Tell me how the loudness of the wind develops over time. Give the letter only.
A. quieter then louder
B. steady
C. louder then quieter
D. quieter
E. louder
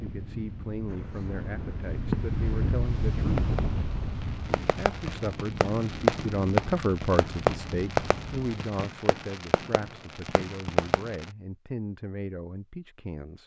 C.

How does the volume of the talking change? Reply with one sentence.
The loudness of the talking goes up, then down.